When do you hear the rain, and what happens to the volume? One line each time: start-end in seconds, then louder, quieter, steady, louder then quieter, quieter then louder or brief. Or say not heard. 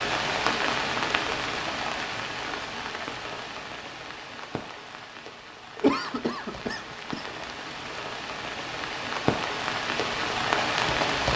0.0-11.3 quieter then louder.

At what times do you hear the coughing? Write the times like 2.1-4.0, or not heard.
5.8-7.2.